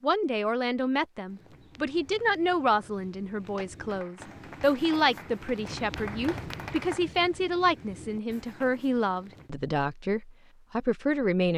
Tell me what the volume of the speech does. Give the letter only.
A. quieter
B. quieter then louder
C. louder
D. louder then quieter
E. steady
E.